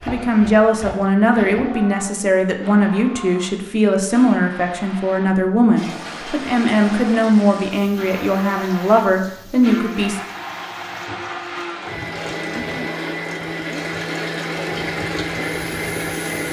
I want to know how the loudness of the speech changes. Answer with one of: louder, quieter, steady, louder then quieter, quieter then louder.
steady.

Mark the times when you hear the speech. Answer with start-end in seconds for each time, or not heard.
0.1-10.2.